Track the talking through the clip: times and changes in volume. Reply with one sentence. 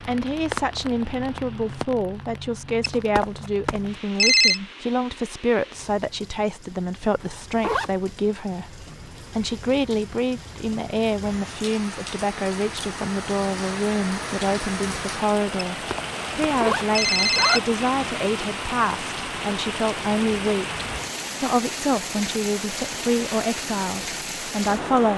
The talking can be heard from 0.0 to 25.1 s, at a steady volume.